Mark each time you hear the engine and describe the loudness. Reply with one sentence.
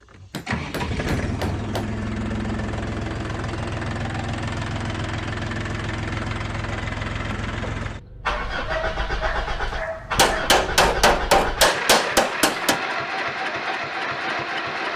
You can hear the engine from 0.0 to 14.9 s, at a steady volume.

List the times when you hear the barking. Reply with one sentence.
You can hear the barking from 8.2 to 10.7 s.